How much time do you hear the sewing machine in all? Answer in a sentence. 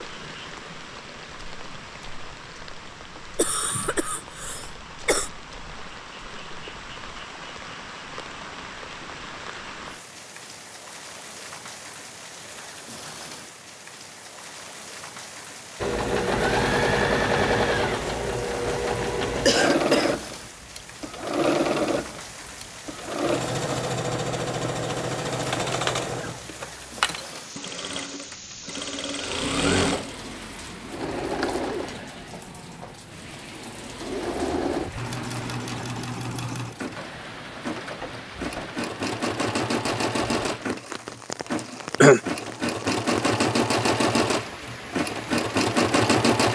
The sewing machine can be heard for 31 seconds in total.